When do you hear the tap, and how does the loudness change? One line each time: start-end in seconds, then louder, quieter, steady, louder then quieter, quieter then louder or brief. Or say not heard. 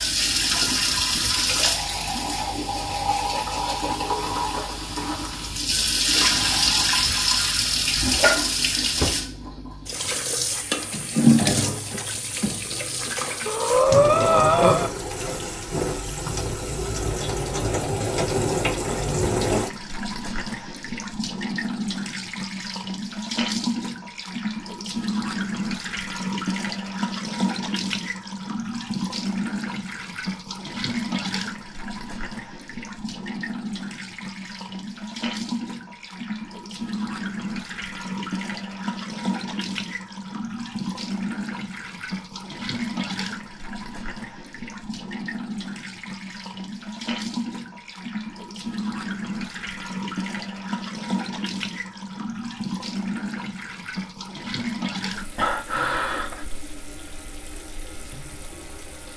0.0-59.1 quieter.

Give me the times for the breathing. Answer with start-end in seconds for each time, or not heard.
13.4-14.9, 55.4-56.5.